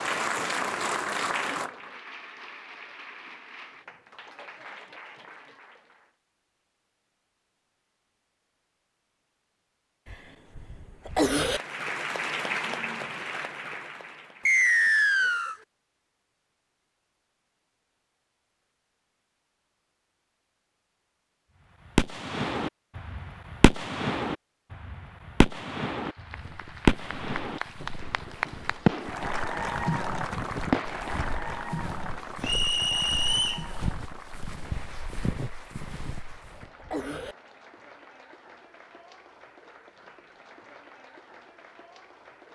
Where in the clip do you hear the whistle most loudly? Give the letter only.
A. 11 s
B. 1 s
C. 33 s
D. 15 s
D.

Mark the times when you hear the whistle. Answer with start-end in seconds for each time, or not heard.
14.4-15.6, 32.4-33.6.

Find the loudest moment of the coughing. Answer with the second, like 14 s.
11 s.